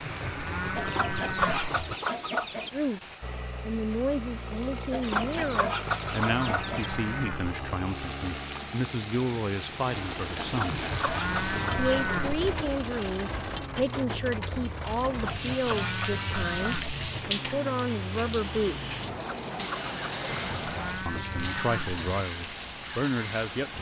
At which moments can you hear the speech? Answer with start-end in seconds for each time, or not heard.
2.7-10.8, 11.7-19.0, 21.1-23.7.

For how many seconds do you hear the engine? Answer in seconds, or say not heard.
24 s.